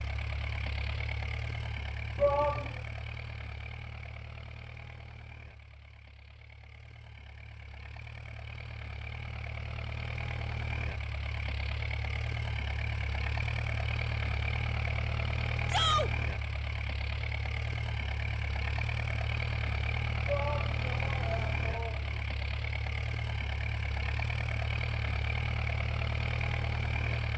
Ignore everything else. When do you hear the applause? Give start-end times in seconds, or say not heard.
not heard.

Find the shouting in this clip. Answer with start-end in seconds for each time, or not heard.
2.1-2.8, 15.7-16.1, 20.2-22.2.